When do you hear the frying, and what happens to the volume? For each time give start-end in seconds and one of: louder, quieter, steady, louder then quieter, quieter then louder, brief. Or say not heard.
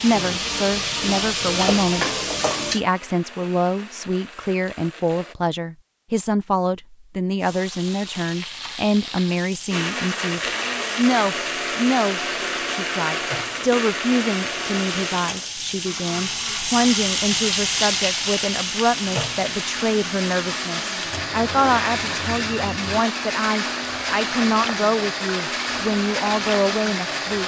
0.0-2.8 brief
7.4-27.4 louder then quieter.